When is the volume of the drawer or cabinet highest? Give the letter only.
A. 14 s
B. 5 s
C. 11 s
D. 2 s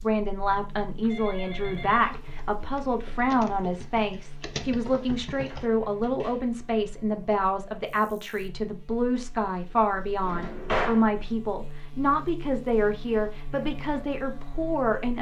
C.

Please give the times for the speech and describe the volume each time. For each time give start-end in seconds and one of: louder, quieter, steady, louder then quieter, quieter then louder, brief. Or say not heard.
0.0-15.1 steady.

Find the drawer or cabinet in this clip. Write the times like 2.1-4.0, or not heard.
1.4-1.9, 5.5-6.4, 10.2-11.0.